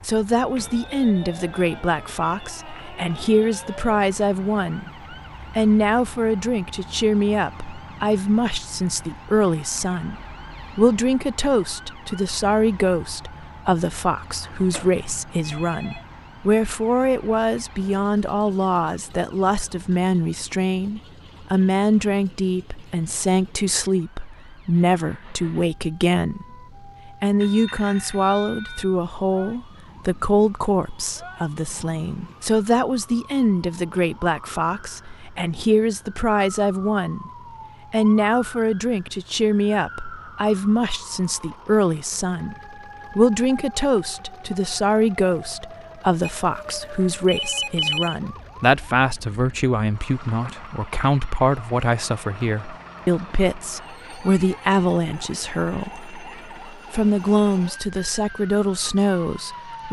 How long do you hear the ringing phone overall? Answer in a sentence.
The ringing phone can be heard for 5 seconds in total.